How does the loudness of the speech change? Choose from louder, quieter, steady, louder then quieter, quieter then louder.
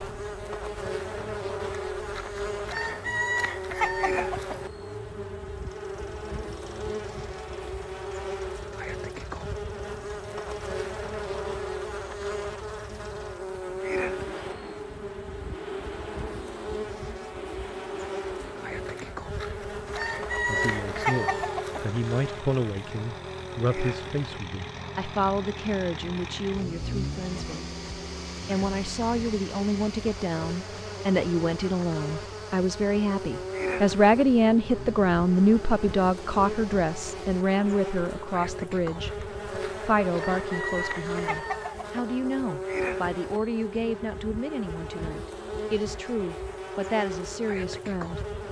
louder then quieter.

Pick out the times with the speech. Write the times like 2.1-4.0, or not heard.
20.4-27.7, 28.4-48.2.